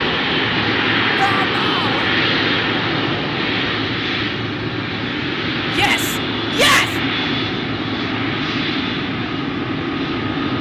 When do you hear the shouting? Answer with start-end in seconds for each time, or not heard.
1.1-2.0, 5.7-7.0.